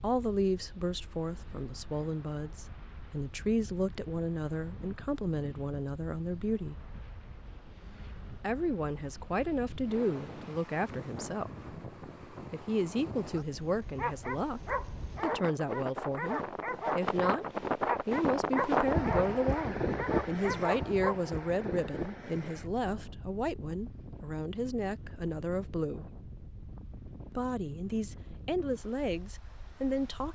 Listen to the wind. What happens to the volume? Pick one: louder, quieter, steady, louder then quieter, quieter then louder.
louder then quieter.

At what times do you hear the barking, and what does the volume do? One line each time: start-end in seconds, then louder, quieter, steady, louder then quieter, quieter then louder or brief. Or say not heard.
13.9-21.1 steady.